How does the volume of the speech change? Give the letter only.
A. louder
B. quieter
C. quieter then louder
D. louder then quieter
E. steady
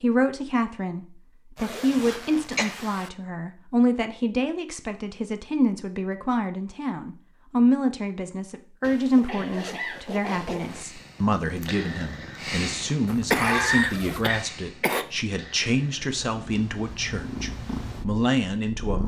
E.